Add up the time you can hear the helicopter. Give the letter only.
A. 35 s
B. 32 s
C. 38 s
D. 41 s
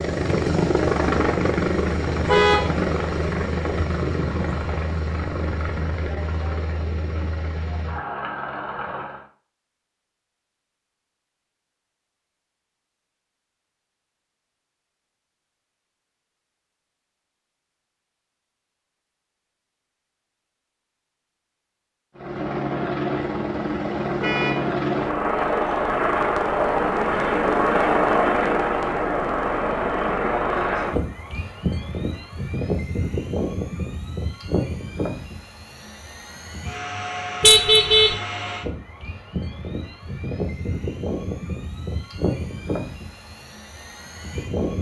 B.